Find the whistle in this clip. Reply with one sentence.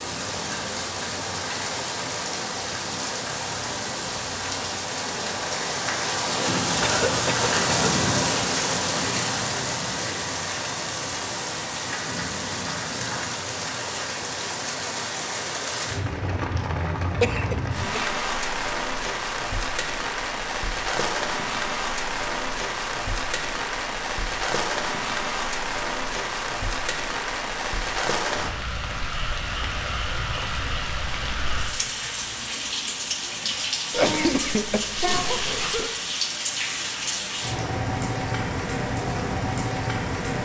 The whistle can't be heard in this clip.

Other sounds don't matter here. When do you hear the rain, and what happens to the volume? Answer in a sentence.
The rain can be heard from 0.0 to 40.4 s, at a steady volume.